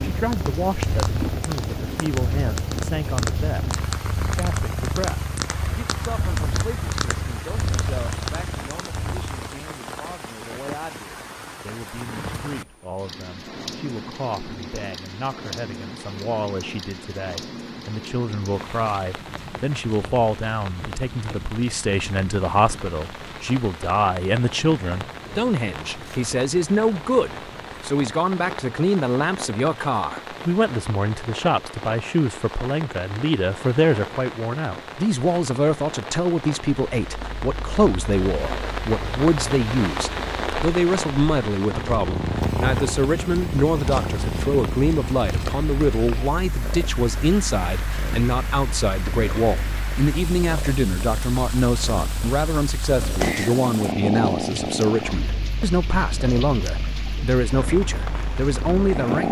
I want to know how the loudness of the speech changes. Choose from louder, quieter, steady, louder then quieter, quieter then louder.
louder.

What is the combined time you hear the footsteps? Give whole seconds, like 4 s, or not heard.
not heard.